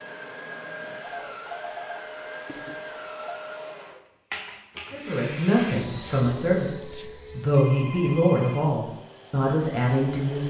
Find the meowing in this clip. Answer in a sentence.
The meowing can't be heard in this clip.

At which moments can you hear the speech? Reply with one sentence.
You can hear the speech from 4.9 to 10.4 s.